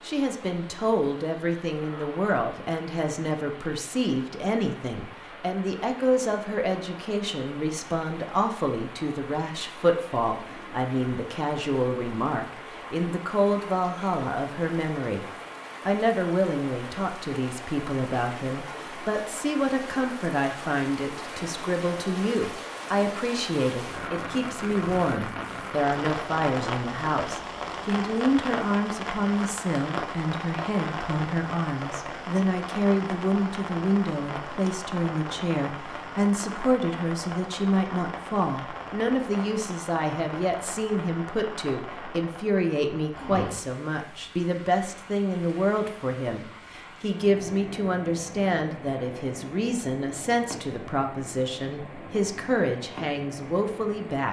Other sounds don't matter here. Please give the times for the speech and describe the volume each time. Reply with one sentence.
The speech can be heard from 0.0 to 15.2 s, at a steady volume; and from 15.8 to 54.2 s, at a steady volume.